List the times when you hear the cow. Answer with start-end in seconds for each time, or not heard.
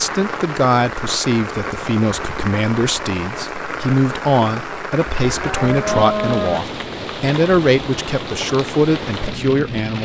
5.1-6.6.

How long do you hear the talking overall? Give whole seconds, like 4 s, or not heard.
10 s.